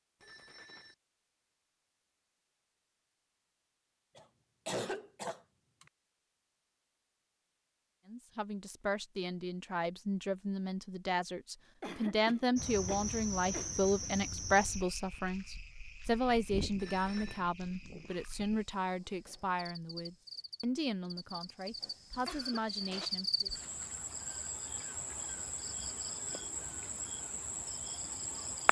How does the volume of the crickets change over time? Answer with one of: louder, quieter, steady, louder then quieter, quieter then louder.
quieter then louder.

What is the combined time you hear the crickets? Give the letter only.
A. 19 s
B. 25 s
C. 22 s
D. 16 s
D.